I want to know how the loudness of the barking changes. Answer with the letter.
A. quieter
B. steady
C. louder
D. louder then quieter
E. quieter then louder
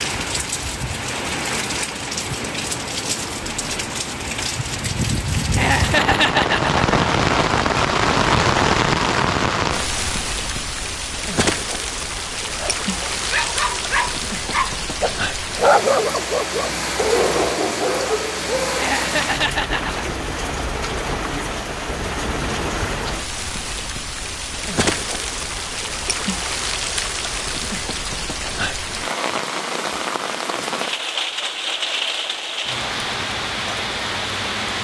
D.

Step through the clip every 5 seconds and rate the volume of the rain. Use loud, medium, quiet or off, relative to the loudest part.
medium, loud, medium, medium, medium, medium, medium.